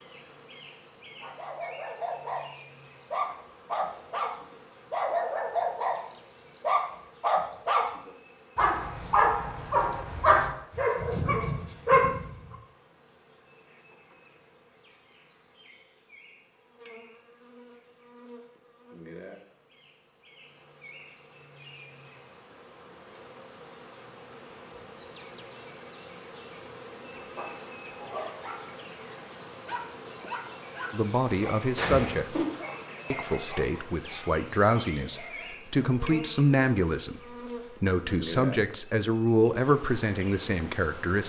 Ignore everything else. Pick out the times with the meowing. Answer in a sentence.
You can hear the meowing from 31.8 to 32.5 s.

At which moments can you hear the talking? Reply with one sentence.
The talking can be heard from 30.9 to 32.4 s and from 33.1 to 41.2 s.